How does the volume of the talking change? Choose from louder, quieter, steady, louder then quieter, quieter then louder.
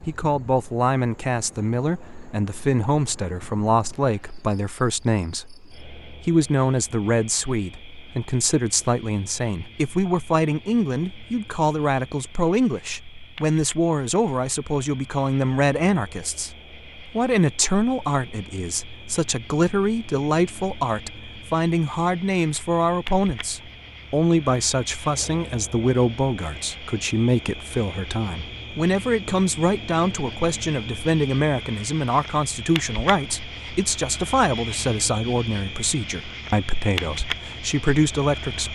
steady.